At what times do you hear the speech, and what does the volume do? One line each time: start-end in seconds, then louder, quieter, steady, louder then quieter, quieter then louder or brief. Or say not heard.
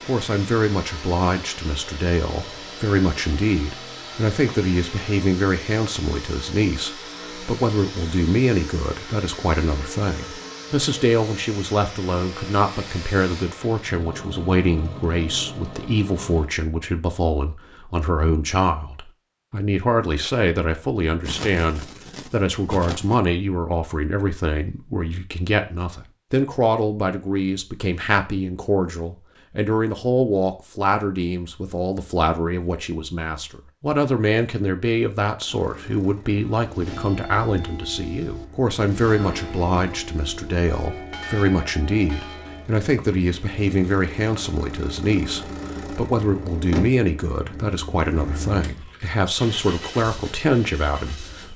0.1-51.5 steady.